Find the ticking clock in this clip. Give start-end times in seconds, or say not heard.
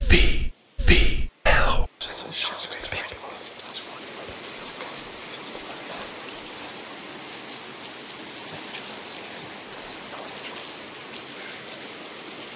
not heard.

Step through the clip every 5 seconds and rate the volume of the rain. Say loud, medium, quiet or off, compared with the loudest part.
medium, loud, loud.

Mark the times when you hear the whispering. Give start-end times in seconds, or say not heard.
0.0-6.9, 8.4-10.7.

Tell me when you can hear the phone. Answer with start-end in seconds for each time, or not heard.
not heard.